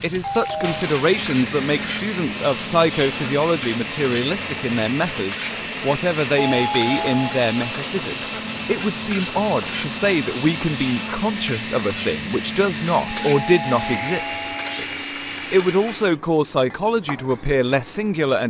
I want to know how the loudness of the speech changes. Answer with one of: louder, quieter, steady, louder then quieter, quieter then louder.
steady.